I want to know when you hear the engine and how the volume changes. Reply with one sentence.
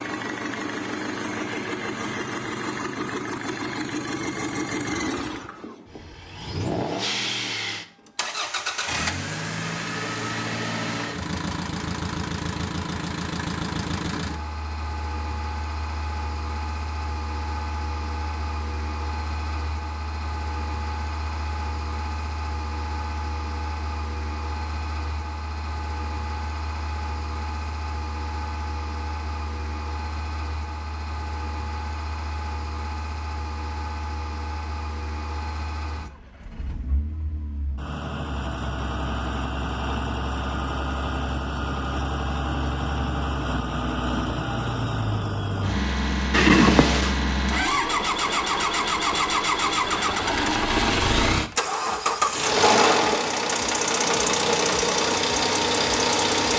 You can hear the engine from 0.0 to 56.5 s, getting quieter then louder.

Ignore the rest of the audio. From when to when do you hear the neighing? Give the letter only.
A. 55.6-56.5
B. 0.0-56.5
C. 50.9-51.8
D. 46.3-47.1
D.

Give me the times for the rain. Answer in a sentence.
The rain can't be heard in this clip.